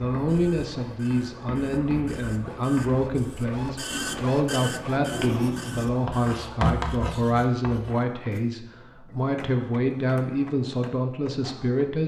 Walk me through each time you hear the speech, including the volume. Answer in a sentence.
You can hear the speech from 0.0 to 12.0 s, at a steady volume.